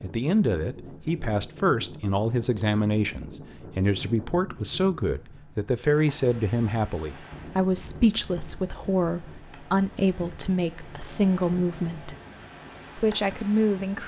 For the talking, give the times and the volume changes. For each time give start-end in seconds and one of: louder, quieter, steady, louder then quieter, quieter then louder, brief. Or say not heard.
0.0-12.2 steady
12.9-14.0 brief.